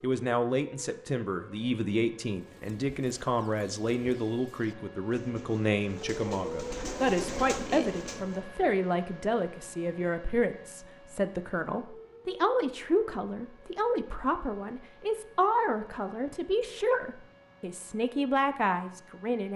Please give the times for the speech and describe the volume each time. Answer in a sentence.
You can hear the speech from 0.0 to 19.5 s, at a steady volume.